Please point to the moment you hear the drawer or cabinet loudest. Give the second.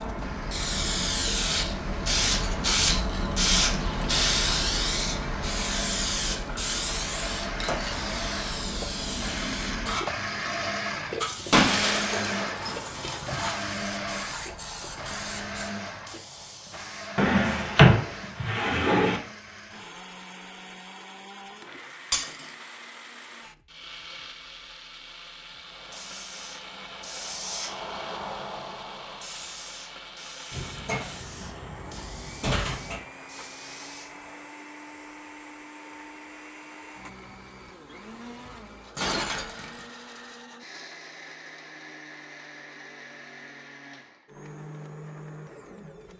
18 s.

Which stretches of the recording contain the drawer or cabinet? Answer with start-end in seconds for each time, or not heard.
17.1-19.2, 30.5-33.0.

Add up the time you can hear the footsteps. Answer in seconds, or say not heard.
not heard.